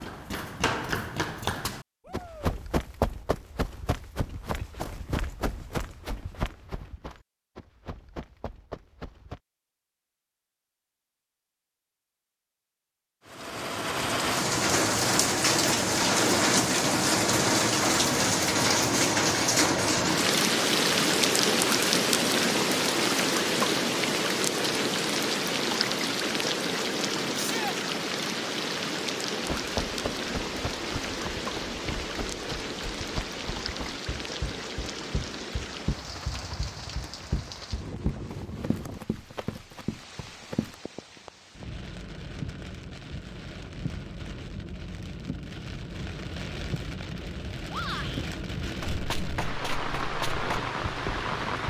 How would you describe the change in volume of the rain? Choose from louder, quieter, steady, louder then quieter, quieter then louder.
quieter then louder.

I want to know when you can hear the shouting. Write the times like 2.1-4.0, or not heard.
2.0-2.6, 27.3-27.8, 47.7-48.2.